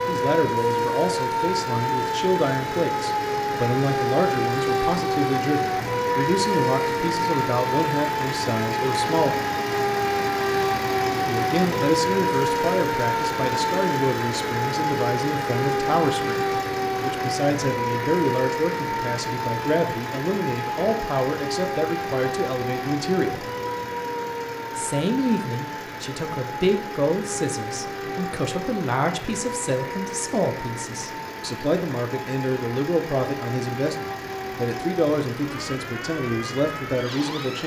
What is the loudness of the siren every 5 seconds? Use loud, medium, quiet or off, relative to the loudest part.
loud, loud, loud, loud, medium, medium, medium, medium.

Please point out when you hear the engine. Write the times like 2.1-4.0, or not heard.
0.0-37.6.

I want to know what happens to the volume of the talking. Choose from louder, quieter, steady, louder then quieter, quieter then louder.
steady.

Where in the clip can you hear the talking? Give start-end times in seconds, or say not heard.
0.1-9.4, 11.2-23.4, 24.8-37.6.